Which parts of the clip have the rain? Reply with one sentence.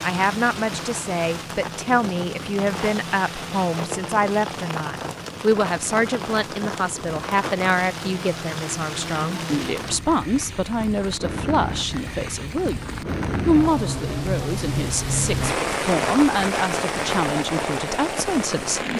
You can hear the rain from 0.0 to 18.9 s.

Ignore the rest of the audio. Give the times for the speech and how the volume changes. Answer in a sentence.
You can hear the speech from 0.0 to 18.9 s, at a steady volume.